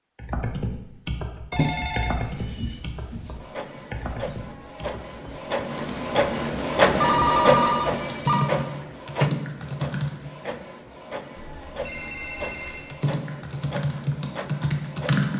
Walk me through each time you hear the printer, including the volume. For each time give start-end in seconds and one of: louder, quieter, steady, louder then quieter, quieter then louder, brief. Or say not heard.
3.4-15.3 louder then quieter.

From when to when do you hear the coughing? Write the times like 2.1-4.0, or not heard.
not heard.